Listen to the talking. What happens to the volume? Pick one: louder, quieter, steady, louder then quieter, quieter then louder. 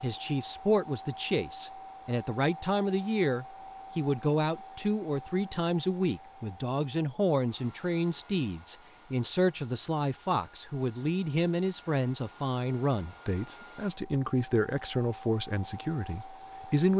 steady.